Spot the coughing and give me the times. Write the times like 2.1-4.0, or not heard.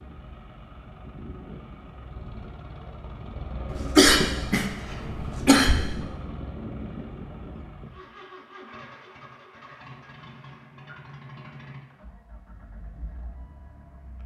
3.7-6.0.